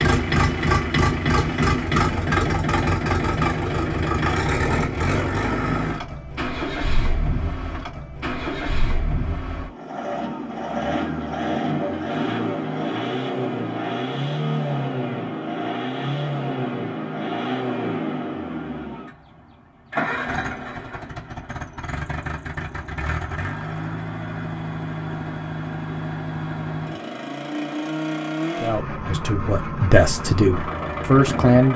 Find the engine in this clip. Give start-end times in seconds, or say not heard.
0.0-31.7.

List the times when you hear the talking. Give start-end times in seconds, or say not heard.
28.6-31.7.